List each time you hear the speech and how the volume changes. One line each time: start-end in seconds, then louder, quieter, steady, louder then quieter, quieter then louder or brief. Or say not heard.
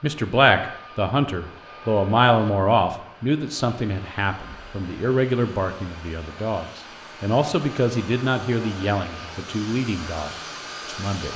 0.0-11.3 quieter.